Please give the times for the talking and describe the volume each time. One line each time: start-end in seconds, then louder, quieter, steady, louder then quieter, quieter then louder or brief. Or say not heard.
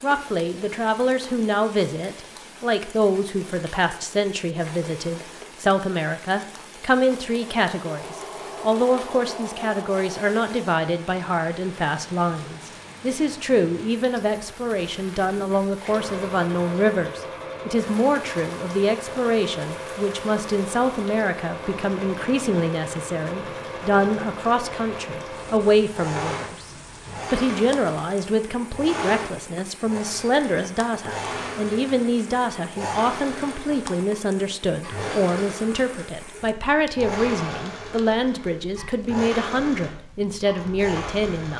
0.0-26.6 steady
27.3-41.5 steady.